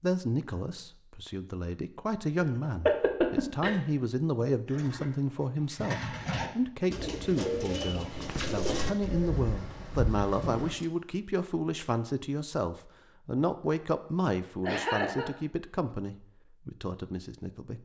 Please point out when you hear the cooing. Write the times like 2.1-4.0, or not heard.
4.7-10.8.